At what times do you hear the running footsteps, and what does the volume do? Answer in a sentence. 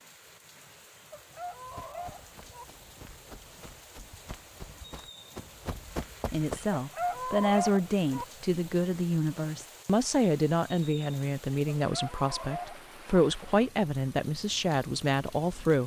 The running footsteps can be heard from 1.6 to 6.7 s, getting louder.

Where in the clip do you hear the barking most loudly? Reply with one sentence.
The loudest moment of the barking is at 8 seconds.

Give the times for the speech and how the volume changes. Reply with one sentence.
You can hear the speech from 6.3 to 15.8 s, at a steady volume.